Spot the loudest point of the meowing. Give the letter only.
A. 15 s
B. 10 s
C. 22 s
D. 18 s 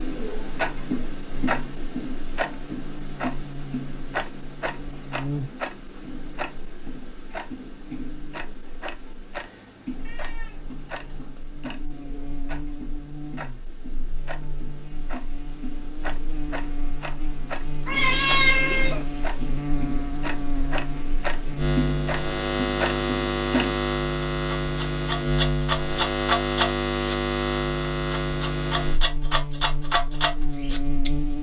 D.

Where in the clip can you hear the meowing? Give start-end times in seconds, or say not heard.
9.3-11.3, 17.9-19.1.